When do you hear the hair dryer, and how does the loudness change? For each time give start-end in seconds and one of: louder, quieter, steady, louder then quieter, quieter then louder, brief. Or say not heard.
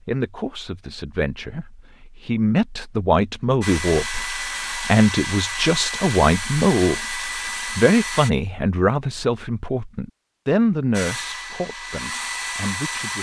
3.6-8.3 steady
10.9-13.1 brief.